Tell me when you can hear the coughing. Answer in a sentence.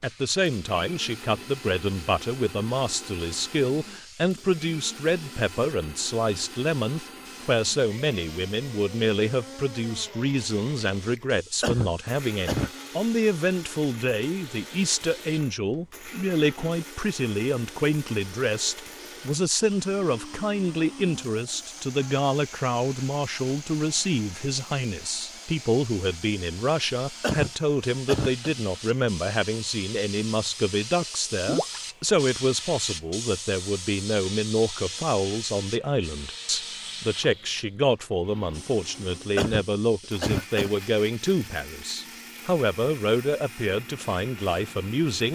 You can hear the coughing from 11.6 to 12.7 s, from 27.2 to 28.5 s and from 39.4 to 40.7 s.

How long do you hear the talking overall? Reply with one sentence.
You can hear the talking for 45 seconds altogether.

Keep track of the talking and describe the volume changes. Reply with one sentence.
The volume of the talking stays about the same.